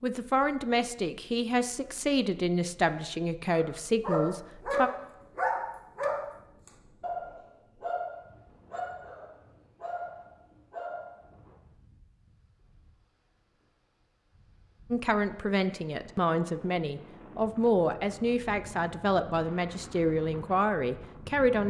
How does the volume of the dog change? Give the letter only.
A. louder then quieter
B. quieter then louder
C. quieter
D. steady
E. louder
C.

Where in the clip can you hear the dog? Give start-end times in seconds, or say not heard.
3.5-11.2.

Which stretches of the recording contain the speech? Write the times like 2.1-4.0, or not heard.
0.0-4.9, 14.9-21.6.